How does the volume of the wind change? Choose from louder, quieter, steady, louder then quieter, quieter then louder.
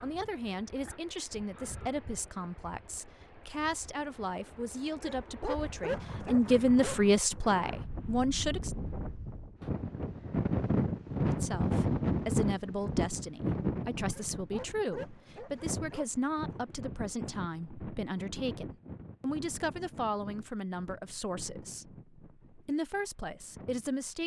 louder then quieter.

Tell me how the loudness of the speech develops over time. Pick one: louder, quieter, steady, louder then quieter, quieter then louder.
louder then quieter.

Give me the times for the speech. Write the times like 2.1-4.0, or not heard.
0.0-8.8, 11.3-24.2.